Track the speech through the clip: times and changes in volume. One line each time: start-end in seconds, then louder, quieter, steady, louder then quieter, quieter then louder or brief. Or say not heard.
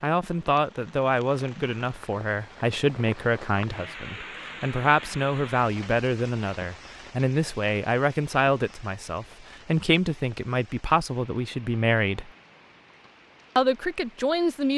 0.0-12.3 steady
13.6-14.7 brief.